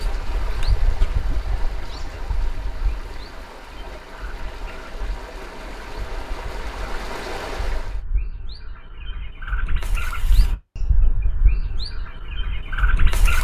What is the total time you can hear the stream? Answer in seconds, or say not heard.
8 s.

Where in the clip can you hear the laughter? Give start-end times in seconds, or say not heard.
not heard.